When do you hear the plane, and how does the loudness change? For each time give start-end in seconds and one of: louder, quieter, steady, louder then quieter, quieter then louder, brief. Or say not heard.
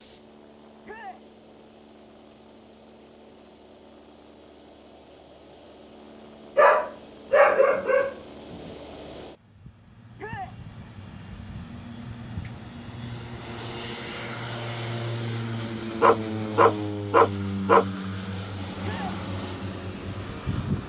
0.0-20.8 louder.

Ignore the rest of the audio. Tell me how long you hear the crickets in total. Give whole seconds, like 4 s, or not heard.
not heard.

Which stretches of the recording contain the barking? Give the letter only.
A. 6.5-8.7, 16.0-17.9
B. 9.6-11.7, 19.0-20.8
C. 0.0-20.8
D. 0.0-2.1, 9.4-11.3
A.